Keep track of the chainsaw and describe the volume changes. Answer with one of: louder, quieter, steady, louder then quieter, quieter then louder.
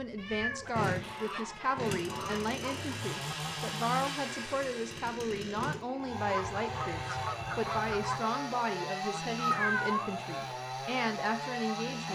steady.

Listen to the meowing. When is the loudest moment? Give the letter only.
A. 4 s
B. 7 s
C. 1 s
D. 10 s
D.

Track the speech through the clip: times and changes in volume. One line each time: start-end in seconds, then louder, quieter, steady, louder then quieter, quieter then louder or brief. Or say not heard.
0.0-12.0 steady.